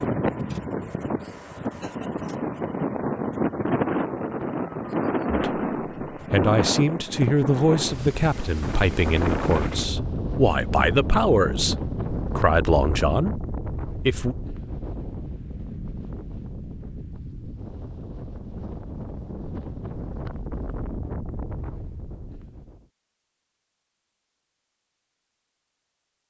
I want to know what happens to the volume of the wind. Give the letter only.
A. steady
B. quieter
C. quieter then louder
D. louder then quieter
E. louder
B.